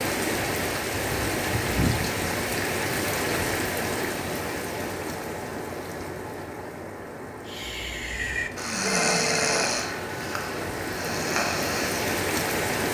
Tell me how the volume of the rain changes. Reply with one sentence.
The loudness of the rain goes down, then up.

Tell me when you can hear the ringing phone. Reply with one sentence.
You can hear the ringing phone from 8.8 to 9.7 s.